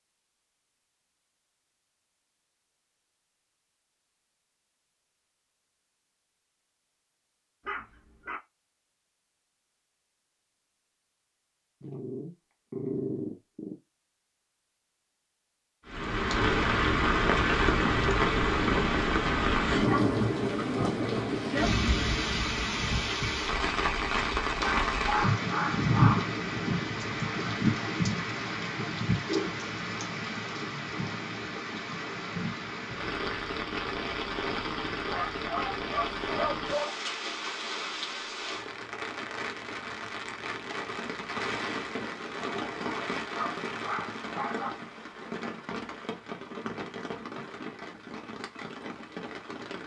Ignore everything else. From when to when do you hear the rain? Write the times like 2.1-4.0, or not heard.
15.8-49.8.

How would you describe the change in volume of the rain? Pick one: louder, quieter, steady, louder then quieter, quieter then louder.
quieter.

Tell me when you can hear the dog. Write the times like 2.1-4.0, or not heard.
7.7-8.4, 11.8-13.8, 24.5-26.4, 35.0-36.9, 42.5-44.8.